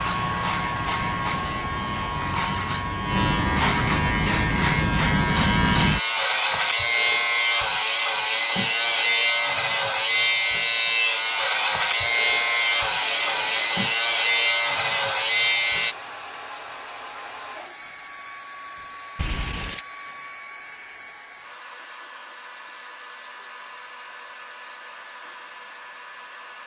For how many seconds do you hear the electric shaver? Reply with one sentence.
You can hear the electric shaver for 16 seconds altogether.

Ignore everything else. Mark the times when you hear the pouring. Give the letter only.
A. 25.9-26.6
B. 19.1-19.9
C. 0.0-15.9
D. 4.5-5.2
B.